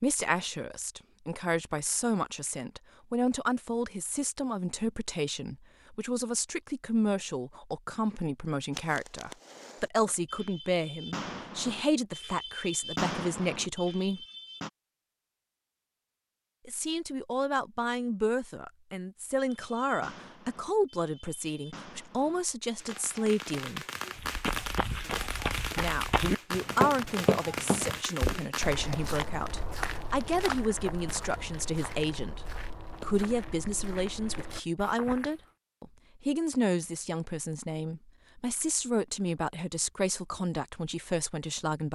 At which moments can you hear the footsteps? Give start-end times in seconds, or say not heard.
24.1-35.4.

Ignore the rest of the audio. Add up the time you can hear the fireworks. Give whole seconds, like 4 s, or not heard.
15 s.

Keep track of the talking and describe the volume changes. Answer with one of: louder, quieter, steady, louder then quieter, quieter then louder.
steady.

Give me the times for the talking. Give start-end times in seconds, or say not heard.
0.0-14.2, 16.6-23.9, 25.8-41.9.